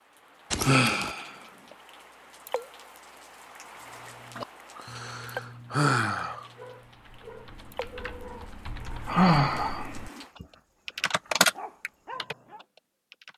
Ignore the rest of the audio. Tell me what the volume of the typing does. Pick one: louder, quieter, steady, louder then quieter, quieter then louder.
louder then quieter.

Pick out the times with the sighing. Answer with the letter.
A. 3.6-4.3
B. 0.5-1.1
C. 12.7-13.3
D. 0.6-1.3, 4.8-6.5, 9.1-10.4
D.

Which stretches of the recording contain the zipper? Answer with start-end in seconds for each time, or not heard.
0.5-1.1.